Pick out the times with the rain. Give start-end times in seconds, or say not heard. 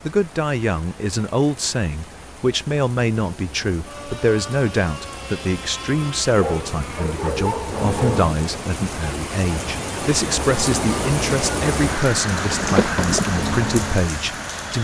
0.0-14.7.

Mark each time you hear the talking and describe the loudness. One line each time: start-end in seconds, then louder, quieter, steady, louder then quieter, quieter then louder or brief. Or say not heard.
0.0-14.7 steady.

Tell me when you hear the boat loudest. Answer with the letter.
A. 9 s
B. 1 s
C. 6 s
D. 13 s
D.